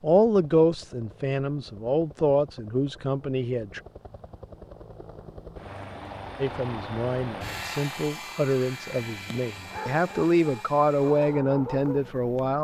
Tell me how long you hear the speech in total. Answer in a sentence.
You can hear the speech for 10 seconds altogether.